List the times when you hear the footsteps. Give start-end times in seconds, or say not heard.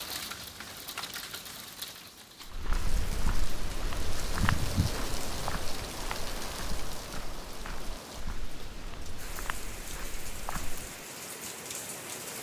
2.5-10.9.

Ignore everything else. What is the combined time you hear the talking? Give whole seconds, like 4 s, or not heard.
not heard.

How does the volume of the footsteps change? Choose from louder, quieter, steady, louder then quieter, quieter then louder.
quieter.